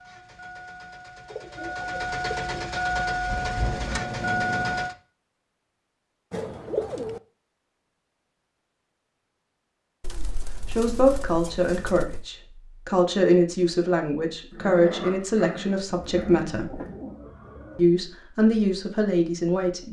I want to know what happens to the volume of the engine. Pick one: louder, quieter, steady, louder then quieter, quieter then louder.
louder.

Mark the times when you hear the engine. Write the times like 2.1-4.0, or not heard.
0.0-5.0.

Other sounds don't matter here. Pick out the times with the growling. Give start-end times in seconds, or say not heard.
3.6-4.8, 14.5-17.1.